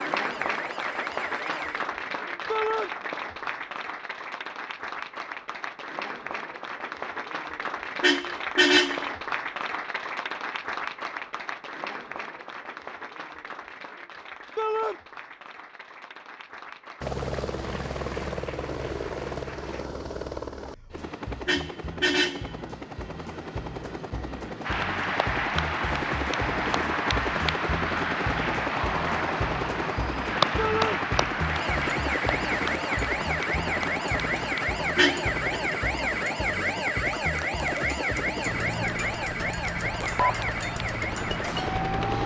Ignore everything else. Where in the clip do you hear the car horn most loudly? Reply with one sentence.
The loudest moment of the car horn is at 9 seconds.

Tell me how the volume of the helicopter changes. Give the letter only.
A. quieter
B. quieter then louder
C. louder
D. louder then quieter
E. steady
E.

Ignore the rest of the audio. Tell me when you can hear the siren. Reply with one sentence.
You can hear the siren from 0.0 to 1.9 s and from 31.4 to 42.2 s.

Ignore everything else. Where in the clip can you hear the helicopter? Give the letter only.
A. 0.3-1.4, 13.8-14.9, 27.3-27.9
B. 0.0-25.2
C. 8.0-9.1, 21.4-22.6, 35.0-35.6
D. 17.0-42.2
D.